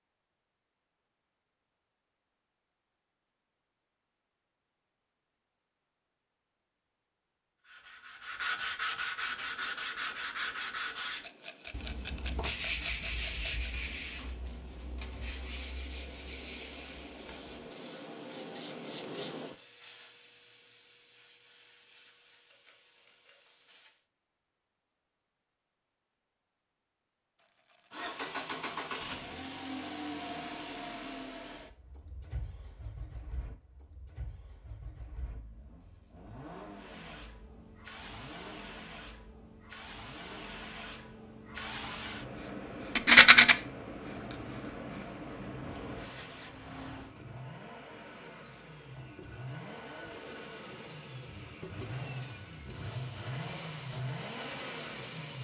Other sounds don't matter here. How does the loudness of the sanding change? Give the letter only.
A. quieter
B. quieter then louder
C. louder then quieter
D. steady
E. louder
A.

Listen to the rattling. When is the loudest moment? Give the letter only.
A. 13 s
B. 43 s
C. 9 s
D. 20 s
B.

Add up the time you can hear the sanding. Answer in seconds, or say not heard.
10 s.